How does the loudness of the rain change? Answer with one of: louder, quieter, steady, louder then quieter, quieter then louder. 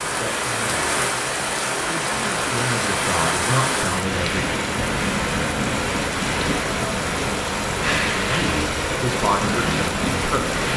steady.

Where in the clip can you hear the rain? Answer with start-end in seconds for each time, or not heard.
0.0-10.7.